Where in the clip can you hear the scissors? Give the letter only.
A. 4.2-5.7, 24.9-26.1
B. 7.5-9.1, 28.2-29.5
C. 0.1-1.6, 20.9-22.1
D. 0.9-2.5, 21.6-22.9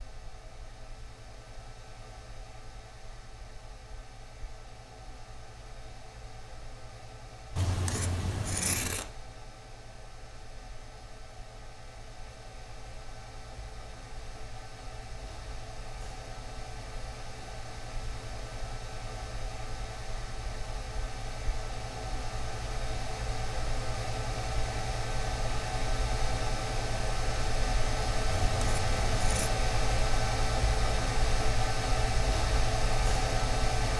B.